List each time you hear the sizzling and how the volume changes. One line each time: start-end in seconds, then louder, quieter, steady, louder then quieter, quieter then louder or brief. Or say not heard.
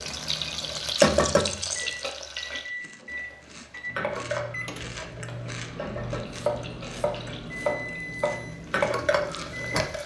0.0-10.0 quieter then louder.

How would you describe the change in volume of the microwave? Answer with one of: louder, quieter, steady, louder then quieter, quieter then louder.
steady.